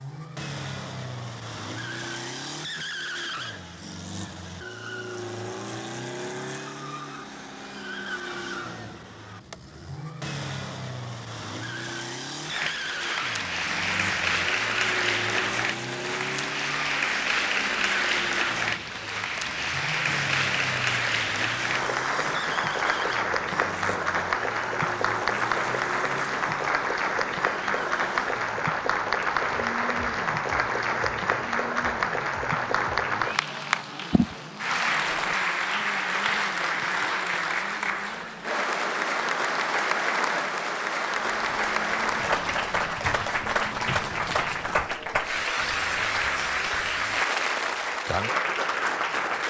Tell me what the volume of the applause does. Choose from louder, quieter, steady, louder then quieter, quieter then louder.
steady.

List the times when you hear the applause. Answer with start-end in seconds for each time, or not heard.
12.4-49.4.